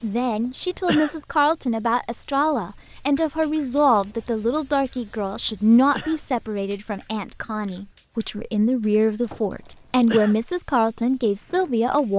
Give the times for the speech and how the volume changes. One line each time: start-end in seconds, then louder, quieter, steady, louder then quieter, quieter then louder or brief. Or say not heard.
0.0-12.1 steady.